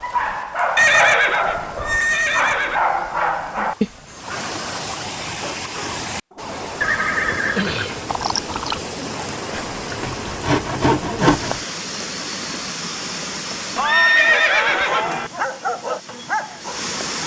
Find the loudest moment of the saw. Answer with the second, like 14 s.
11 s.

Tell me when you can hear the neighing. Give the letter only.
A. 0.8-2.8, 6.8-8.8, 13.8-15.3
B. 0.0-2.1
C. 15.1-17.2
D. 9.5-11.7
A.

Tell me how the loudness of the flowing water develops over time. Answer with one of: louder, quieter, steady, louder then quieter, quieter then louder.
louder then quieter.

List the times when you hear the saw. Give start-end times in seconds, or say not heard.
9.5-11.7.